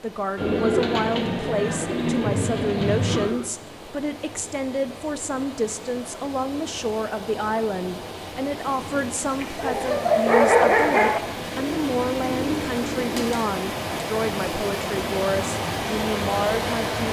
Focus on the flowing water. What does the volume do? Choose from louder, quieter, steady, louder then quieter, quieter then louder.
louder.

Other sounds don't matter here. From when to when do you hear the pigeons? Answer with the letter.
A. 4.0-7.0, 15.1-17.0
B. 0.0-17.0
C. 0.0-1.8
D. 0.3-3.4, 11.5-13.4
D.